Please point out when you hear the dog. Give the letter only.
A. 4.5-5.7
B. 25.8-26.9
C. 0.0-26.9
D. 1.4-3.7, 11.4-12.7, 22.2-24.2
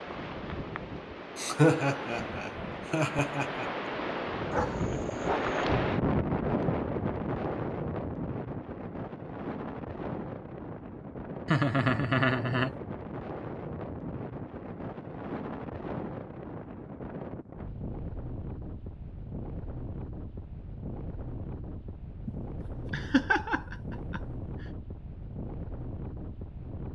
A.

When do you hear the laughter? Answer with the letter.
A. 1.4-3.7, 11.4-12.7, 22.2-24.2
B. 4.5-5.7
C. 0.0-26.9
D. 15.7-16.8
A.